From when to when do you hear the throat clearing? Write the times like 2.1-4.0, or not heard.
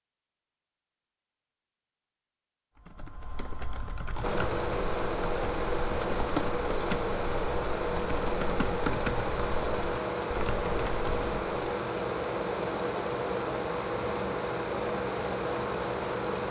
not heard.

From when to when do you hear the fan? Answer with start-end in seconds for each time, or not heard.
4.2-16.4.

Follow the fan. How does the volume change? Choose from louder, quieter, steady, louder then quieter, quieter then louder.
steady.